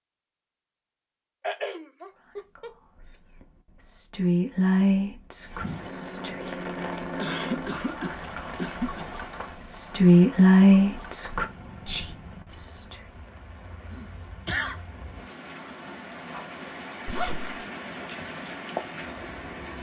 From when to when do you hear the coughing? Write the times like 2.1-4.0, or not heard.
1.4-2.8, 7.2-9.1, 13.9-14.8.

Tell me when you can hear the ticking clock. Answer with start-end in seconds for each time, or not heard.
not heard.